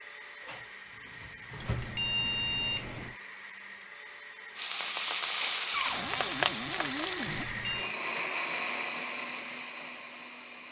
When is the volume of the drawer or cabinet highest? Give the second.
6 s.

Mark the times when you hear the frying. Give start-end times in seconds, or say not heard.
4.5-7.5.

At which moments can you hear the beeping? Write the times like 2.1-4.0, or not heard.
1.6-3.1, 7.2-8.0.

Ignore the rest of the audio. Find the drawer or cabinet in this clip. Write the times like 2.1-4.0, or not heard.
0.4-1.9, 5.7-7.5.